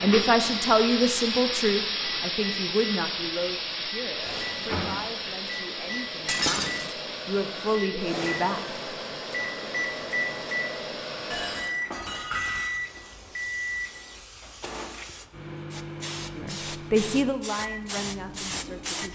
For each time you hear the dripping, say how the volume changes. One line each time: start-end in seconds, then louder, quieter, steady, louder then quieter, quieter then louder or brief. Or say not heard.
not heard.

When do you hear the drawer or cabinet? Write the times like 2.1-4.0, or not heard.
4.2-5.0.